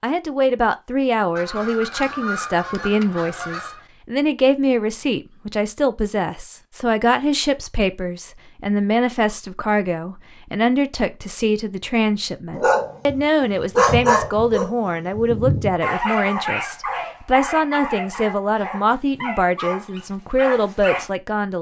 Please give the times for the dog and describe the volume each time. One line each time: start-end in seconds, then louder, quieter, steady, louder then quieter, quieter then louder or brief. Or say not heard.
12.6-21.1 quieter.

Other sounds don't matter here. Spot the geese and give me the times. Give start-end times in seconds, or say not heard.
1.4-3.9.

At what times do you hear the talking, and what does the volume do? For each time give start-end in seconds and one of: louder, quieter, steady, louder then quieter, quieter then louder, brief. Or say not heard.
0.0-21.5 steady.